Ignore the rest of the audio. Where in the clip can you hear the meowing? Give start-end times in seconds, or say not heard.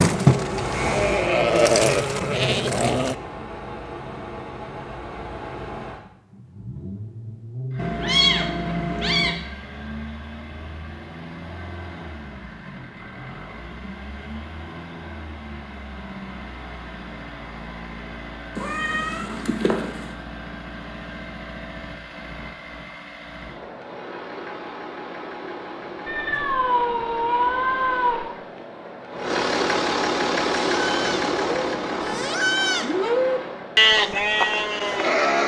7.8-9.3, 18.6-20.1, 26.1-28.2.